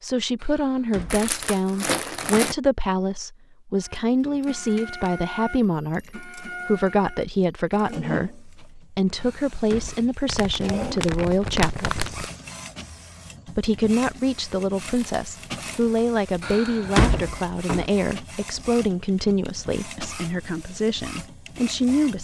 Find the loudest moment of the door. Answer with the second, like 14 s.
17 s.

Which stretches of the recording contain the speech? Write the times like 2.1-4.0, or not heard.
0.0-12.0, 13.5-22.1.